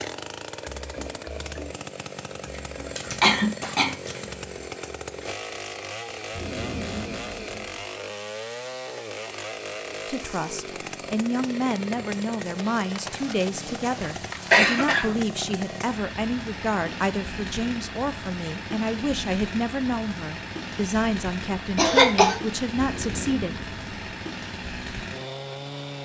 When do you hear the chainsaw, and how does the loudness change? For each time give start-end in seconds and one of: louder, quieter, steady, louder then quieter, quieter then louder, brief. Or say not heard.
0.0-26.0 steady.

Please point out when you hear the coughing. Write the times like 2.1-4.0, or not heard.
3.0-4.2, 14.5-15.2, 21.8-22.4.